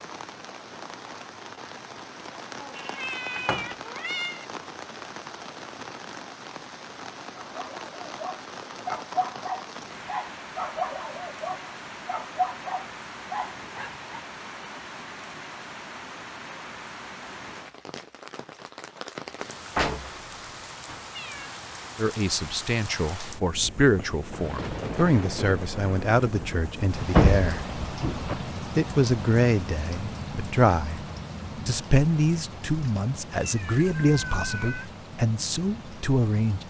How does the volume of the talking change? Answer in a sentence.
The loudness of the talking stays about the same.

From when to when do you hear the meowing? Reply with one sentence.
You can hear the meowing from 2.6 to 4.5 s, from 21.1 to 21.6 s and from 33.4 to 35.0 s.